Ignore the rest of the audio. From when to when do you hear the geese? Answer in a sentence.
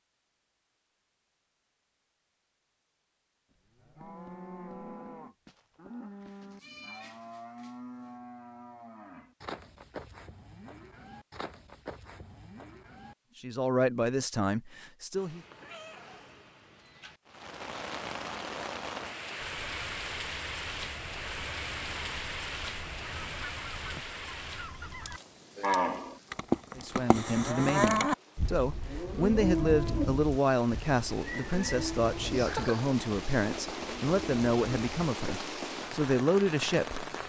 You can hear the geese from 19.4 to 25.2 s.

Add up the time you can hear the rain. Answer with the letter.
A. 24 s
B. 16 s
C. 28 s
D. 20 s
D.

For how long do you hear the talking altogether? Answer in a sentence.
You can hear the talking for 12 seconds altogether.